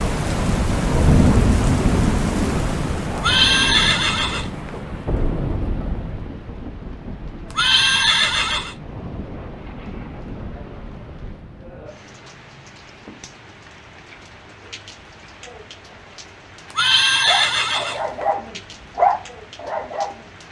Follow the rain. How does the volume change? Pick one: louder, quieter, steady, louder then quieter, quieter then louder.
quieter.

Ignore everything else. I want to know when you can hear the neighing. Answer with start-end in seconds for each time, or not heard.
3.1-4.7, 7.5-8.8, 16.7-18.2.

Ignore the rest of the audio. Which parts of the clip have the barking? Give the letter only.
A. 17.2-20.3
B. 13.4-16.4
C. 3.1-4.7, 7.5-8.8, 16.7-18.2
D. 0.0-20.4
A.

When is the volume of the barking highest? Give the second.
19 s.